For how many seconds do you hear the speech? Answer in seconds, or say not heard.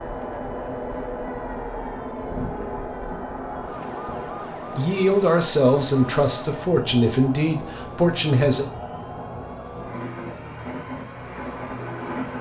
4 s.